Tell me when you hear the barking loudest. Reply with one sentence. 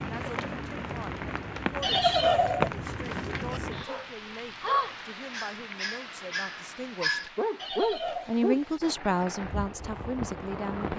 The volume of the barking peaks at 8 seconds.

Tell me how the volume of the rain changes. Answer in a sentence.
The volume of the rain goes down, then up.